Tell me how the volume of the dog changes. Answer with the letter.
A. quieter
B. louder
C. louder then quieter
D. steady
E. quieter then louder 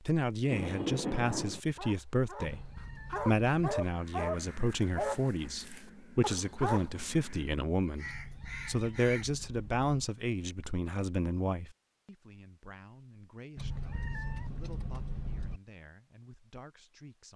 C.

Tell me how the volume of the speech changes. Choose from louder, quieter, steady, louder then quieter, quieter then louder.
quieter.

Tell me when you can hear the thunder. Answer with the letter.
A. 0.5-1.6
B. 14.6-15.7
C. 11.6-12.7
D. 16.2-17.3
A.